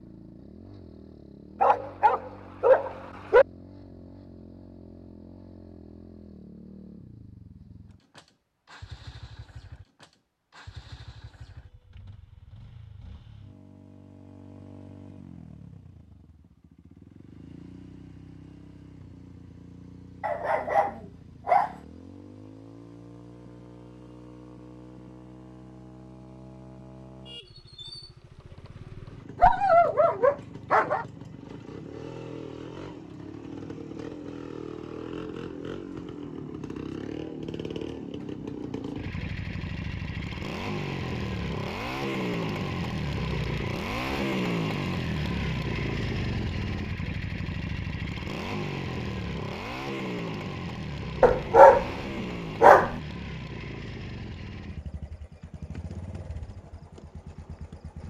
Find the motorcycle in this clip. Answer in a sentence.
You can hear the motorcycle from 0.0 to 58.0 s.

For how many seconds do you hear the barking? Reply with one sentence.
The barking can be heard for 7 seconds in total.